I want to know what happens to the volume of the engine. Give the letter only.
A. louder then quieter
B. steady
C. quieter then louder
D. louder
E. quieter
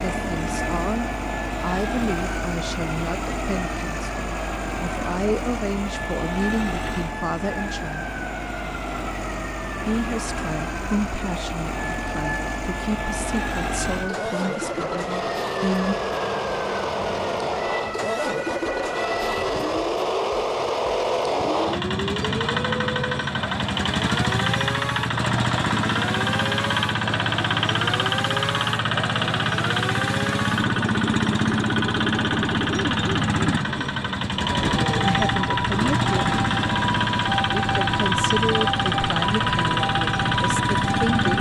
D.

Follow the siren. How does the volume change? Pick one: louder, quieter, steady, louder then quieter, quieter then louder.
louder.